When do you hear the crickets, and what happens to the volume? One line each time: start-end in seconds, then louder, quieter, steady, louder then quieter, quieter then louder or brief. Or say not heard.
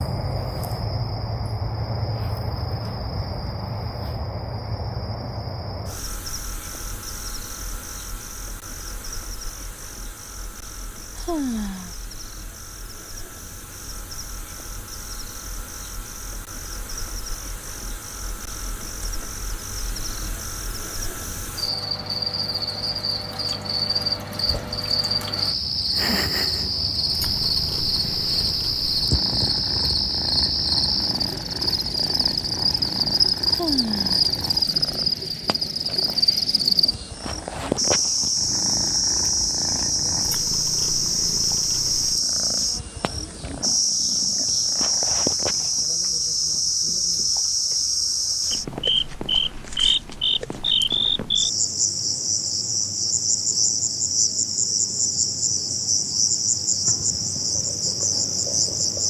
0.0-59.0 louder.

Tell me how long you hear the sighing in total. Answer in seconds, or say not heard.
2 s.